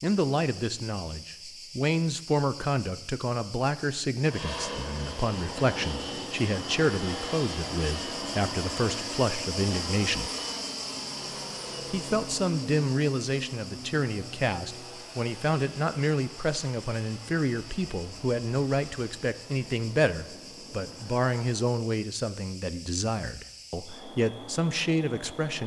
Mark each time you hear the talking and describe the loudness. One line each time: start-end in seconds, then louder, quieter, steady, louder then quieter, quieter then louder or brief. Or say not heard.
0.0-10.3 steady
11.9-25.6 steady.